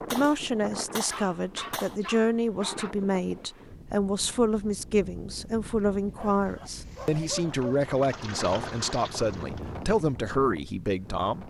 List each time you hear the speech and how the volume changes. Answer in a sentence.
The speech can be heard from 0.1 to 11.4 s, at a steady volume.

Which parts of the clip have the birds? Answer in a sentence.
The birds can't be heard in this clip.